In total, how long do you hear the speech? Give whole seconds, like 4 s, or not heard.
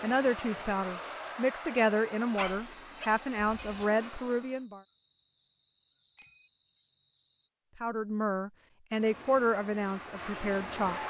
8 s.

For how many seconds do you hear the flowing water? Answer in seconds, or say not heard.
not heard.